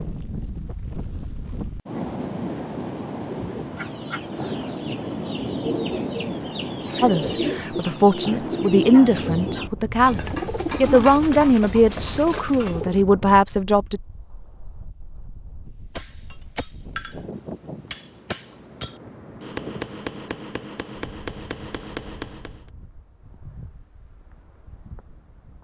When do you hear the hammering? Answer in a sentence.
You can hear the hammering from 15.9 to 22.6 s.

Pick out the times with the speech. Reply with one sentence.
The speech can be heard from 7.0 to 14.0 s.